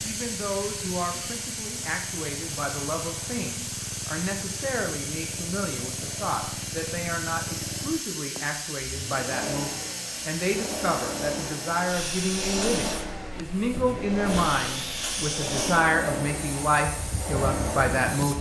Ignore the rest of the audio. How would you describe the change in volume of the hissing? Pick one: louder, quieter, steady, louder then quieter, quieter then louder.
steady.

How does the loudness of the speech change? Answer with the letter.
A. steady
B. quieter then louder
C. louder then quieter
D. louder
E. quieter
D.